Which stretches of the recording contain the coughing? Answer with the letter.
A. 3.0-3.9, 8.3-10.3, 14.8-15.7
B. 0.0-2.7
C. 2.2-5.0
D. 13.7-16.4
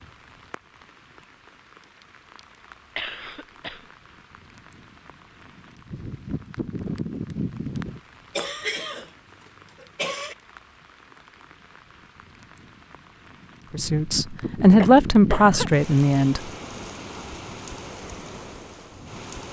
A.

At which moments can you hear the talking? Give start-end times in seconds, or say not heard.
13.7-16.4.